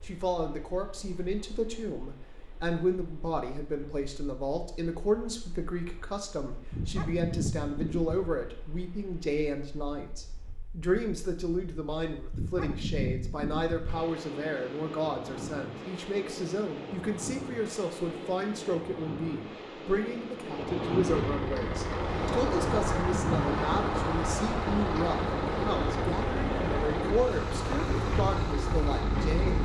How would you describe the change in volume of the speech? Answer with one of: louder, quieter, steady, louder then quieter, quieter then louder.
steady.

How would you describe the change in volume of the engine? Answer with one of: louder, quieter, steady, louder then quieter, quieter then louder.
steady.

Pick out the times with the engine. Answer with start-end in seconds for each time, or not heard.
21.1-29.5.